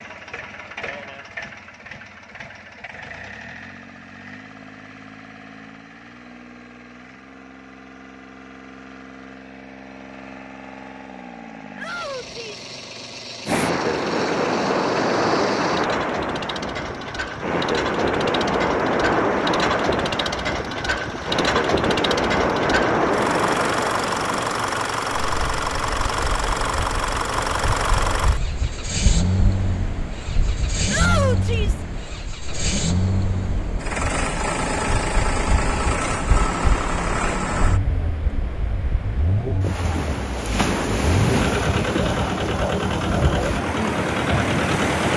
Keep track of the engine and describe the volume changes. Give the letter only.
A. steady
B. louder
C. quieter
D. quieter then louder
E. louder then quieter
B.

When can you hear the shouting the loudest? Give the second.
31 s.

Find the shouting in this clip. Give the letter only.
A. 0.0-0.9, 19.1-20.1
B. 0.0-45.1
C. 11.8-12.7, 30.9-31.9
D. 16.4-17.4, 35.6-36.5
C.